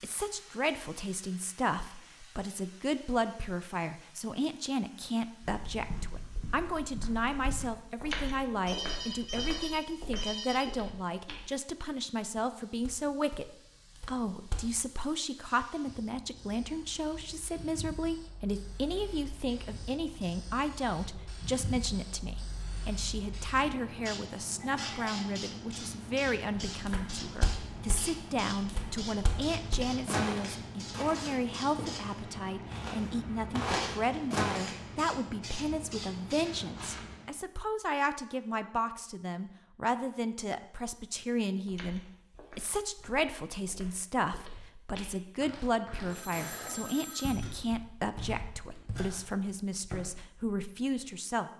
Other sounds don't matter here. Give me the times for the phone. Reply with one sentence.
You can hear the phone from 8.7 to 10.7 s, from 24.6 to 25.3 s and from 46.0 to 47.6 s.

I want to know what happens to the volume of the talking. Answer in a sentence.
The volume of the talking stays about the same.